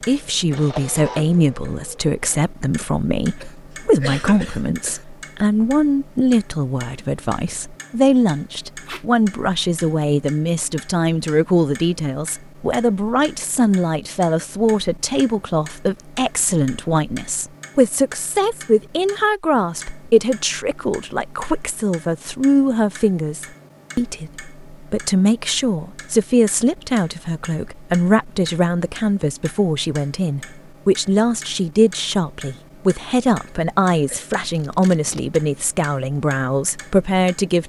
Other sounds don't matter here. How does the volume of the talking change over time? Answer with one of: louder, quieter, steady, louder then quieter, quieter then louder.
steady.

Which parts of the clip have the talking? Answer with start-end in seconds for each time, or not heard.
0.1-37.6.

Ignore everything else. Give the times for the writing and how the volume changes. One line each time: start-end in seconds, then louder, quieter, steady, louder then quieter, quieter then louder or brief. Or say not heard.
not heard.